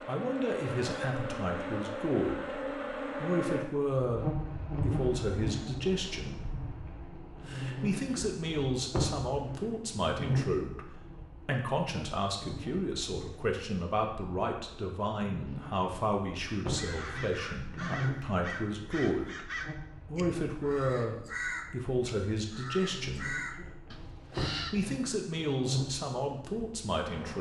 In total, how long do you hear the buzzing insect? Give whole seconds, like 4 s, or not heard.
27 s.